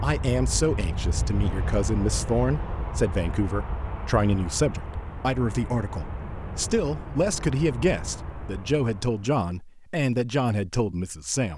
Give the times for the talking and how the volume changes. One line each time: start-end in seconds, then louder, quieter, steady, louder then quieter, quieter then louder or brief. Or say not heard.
0.0-11.5 steady.